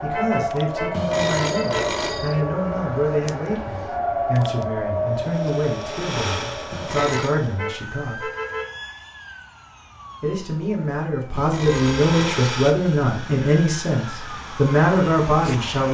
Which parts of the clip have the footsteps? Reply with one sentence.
The footsteps can't be heard in this clip.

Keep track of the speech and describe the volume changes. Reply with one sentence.
The volume of the speech goes up.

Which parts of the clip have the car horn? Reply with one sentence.
You can hear the car horn from 0.1 to 1.9 s, from 7.0 to 8.7 s and from 11.7 to 12.2 s.